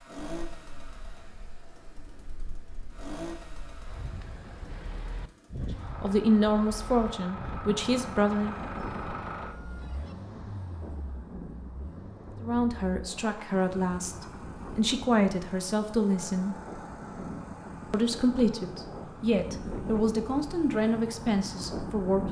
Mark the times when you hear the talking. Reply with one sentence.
The talking can be heard from 6.0 to 8.6 s, from 12.4 to 16.6 s and from 17.9 to 22.2 s.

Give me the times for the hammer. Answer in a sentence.
You can't hear the hammer here.